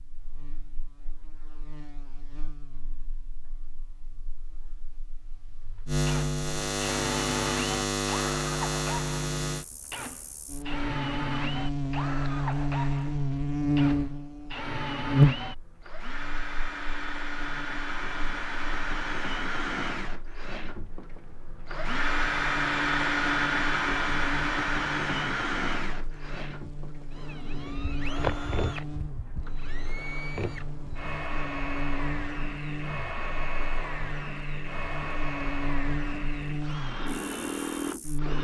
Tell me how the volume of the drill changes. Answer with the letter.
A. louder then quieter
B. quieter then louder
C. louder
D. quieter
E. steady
A.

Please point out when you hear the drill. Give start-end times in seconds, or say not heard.
6.0-38.3.